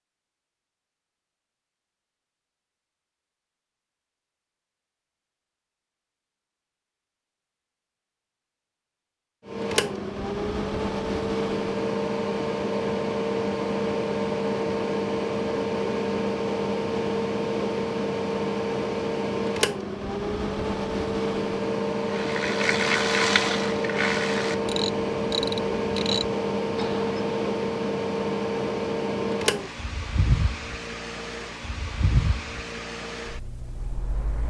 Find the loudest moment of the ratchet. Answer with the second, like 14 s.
23 s.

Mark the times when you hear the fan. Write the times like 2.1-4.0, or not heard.
9.4-34.4.